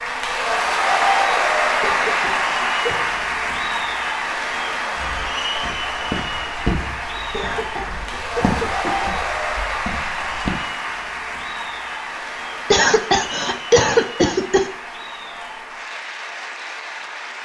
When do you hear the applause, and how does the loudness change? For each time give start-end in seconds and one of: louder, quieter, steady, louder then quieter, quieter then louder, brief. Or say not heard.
0.0-17.4 quieter.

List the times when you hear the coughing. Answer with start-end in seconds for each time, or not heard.
1.8-3.1, 7.3-9.1, 12.7-14.7.